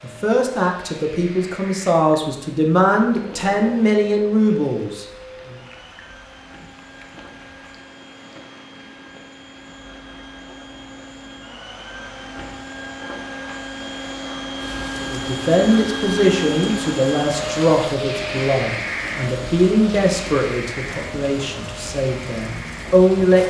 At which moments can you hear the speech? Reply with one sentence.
You can hear the speech from 0.0 to 5.5 s and from 15.0 to 23.4 s.